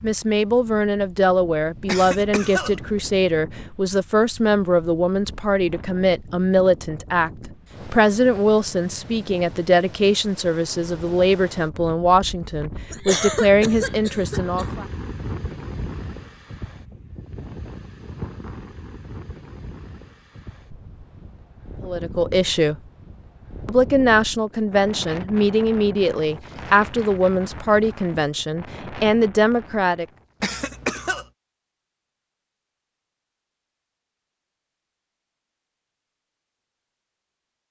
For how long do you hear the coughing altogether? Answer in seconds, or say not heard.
4 s.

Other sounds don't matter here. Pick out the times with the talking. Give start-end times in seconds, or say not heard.
0.0-14.8, 21.8-22.8, 23.6-30.1.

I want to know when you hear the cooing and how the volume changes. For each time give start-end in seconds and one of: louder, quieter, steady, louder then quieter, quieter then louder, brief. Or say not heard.
not heard.